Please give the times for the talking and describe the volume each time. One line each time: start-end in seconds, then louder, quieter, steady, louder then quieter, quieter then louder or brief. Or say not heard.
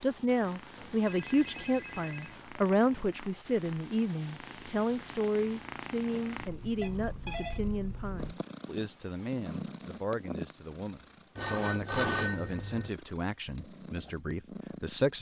0.0-15.1 quieter.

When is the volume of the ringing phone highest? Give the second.
12 s.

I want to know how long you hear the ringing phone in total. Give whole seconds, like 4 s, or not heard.
4 s.